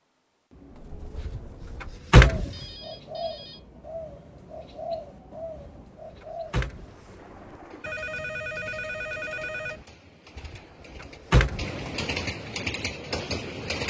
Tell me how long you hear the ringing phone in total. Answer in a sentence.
You can hear the ringing phone for 3 seconds altogether.